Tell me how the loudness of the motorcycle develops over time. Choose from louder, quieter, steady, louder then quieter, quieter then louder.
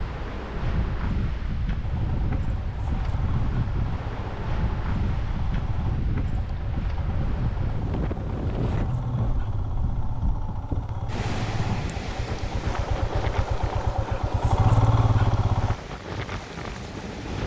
louder.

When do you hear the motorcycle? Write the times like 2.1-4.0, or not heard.
1.8-15.8.